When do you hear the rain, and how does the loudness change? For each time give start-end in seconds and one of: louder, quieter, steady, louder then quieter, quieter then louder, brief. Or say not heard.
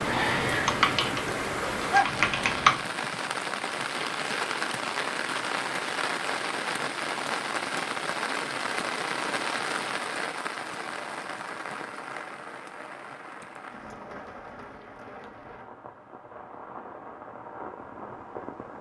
0.0-18.7 quieter.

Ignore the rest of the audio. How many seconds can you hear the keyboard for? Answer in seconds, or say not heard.
3 s.